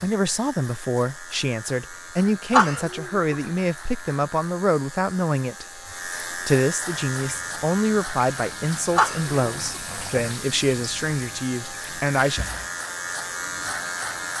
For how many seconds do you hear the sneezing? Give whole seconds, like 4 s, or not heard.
2 s.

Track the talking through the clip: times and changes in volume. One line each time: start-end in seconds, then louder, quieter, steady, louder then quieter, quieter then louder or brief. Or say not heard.
0.0-12.4 steady.